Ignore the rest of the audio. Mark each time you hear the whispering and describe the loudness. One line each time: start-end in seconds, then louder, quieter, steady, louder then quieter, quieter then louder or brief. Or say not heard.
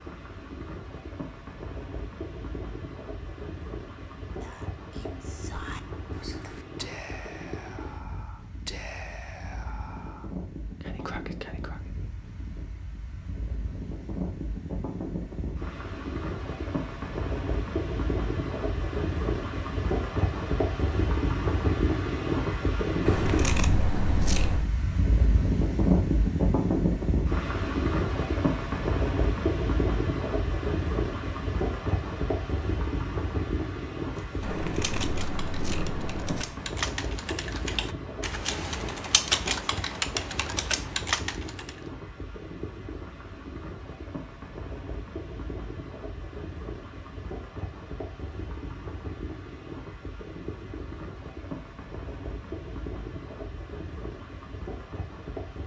4.4-11.9 steady.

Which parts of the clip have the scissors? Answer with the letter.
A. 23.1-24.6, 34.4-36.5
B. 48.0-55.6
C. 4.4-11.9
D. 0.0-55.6
A.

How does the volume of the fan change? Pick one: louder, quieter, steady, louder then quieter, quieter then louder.
louder then quieter.